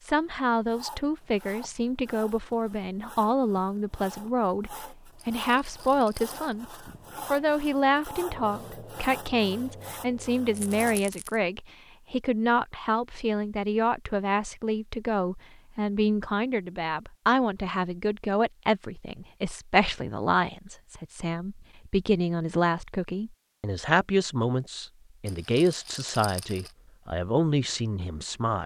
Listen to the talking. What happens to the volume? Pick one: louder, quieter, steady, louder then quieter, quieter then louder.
steady.